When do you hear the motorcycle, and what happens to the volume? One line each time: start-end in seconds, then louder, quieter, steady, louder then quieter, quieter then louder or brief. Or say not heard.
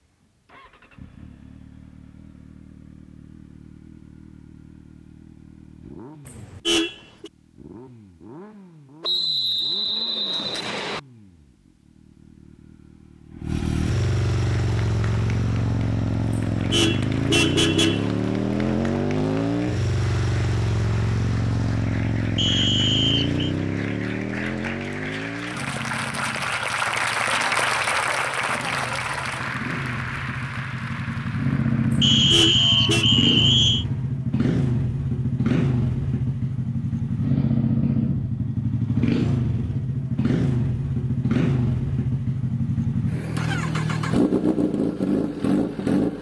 0.0-46.1 louder.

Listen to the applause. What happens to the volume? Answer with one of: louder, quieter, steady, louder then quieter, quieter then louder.
louder then quieter.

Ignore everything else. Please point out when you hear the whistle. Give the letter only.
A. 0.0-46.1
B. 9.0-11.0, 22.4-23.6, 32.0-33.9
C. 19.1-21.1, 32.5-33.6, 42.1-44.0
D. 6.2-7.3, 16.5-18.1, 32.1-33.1
B.